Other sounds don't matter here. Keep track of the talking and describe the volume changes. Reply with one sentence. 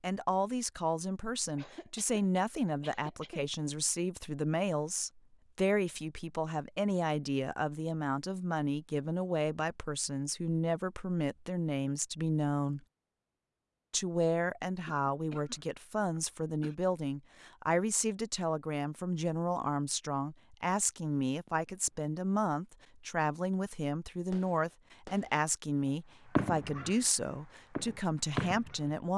The volume of the talking stays about the same.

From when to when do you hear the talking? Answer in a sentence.
You can hear the talking from 0.0 to 12.8 s and from 13.9 to 29.1 s.